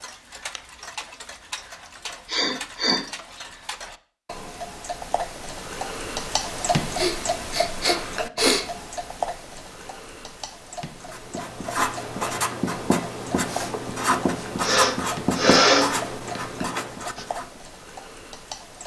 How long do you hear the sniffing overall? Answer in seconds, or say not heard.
5 s.